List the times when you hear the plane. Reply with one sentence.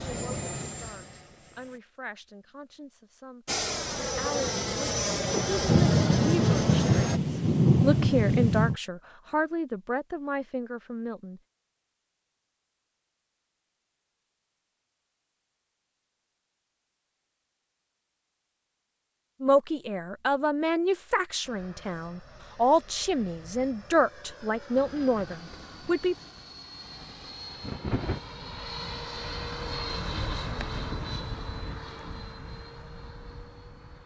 You can hear the plane from 0.0 to 1.8 s, from 3.5 to 7.2 s and from 21.4 to 34.0 s.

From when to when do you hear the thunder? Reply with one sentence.
The thunder can be heard from 5.7 to 8.8 s and from 24.8 to 28.2 s.